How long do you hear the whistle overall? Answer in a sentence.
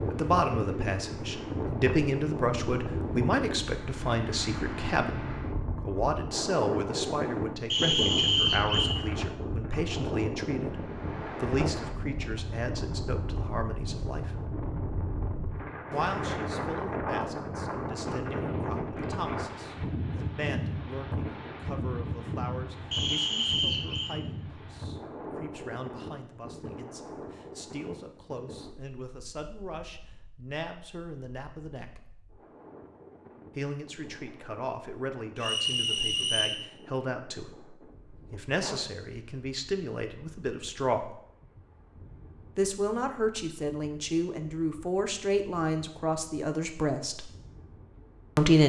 The whistle can be heard for 4 seconds in total.